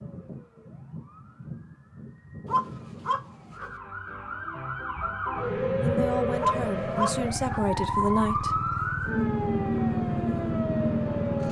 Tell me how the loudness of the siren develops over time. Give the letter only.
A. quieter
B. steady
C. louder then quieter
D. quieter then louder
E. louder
E.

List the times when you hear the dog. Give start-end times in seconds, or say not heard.
2.5-3.7, 6.4-7.6.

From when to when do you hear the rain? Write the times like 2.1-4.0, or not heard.
not heard.